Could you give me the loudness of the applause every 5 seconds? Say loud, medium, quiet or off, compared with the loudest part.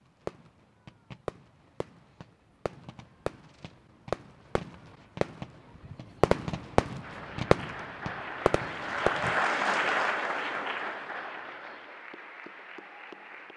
off, loud, medium.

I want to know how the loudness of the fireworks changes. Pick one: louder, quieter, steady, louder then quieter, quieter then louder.
louder.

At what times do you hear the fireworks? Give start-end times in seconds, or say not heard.
0.1-9.4.